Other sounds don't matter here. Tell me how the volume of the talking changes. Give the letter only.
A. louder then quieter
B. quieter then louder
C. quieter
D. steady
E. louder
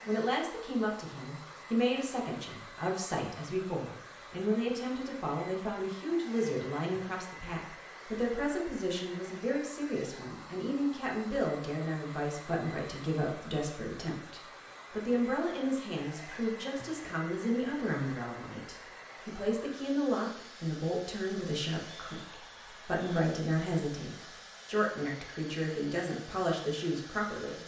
D.